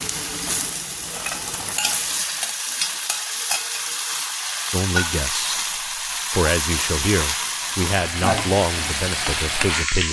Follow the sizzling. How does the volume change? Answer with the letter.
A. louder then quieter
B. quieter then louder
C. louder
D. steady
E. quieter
D.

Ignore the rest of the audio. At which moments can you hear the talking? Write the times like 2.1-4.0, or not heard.
4.7-5.6, 6.3-10.0.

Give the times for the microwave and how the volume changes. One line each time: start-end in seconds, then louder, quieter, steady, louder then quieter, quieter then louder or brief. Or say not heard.
not heard.